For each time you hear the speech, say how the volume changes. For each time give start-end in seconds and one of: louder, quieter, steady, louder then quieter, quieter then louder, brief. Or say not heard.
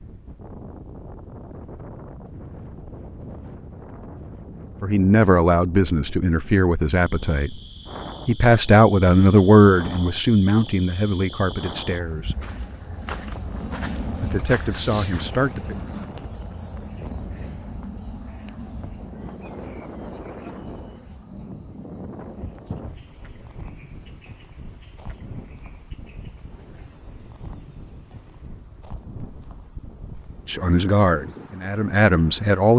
4.8-7.5 brief
8.2-12.3 quieter
14.2-15.8 brief
30.4-32.7 brief.